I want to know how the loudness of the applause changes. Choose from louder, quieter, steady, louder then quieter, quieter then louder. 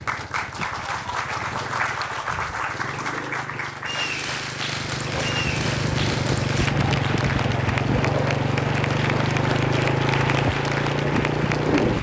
steady.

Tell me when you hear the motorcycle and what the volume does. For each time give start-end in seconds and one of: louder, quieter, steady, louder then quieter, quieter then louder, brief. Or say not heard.
0.0-11.9 louder.